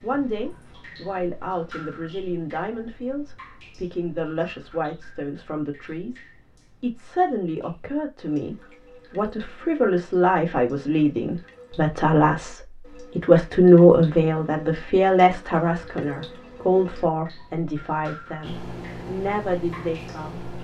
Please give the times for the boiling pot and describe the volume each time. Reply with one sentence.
The boiling pot can't be heard in this clip.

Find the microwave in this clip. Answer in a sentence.
You can hear the microwave from 18.4 to 20.5 s.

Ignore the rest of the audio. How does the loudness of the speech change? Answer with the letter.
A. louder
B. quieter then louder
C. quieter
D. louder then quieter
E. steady
D.